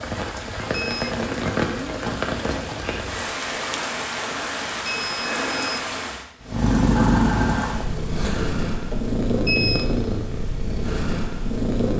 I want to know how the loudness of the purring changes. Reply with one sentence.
The volume of the purring goes down.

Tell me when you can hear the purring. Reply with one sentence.
You can hear the purring from 6.4 to 11.9 s.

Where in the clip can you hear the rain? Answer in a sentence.
The rain can be heard from 0.0 to 6.2 s.